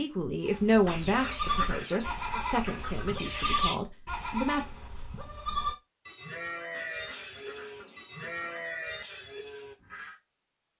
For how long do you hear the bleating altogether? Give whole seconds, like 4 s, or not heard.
10 s.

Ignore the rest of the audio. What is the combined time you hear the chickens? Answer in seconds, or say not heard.
5 s.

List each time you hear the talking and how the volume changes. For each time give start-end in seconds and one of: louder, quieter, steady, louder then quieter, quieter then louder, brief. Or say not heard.
0.0-4.7 quieter.